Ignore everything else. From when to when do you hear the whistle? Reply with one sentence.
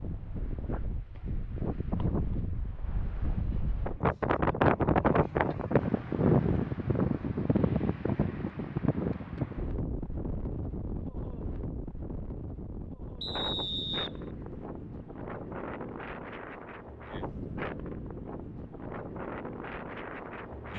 You can hear the whistle from 13.2 to 14.6 s.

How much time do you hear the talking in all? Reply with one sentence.
You can't hear the talking here.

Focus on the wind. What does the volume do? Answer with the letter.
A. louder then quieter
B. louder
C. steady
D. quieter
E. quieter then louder
A.